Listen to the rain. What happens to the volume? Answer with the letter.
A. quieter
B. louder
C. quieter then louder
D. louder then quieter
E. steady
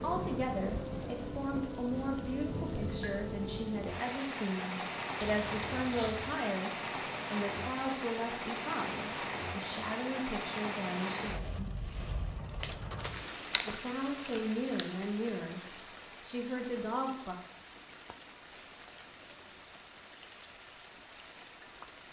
A.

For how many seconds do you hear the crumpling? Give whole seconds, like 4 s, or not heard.
2 s.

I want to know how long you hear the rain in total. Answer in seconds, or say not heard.
22 s.